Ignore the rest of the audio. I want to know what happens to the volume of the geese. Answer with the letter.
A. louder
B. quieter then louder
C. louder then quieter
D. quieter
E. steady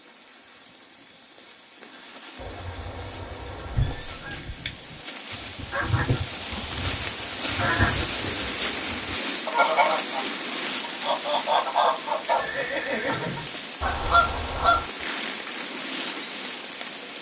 A.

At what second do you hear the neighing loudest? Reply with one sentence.
The loudest moment of the neighing is at 13 seconds.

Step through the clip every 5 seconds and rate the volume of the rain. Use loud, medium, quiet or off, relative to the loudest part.
quiet, loud, loud, loud.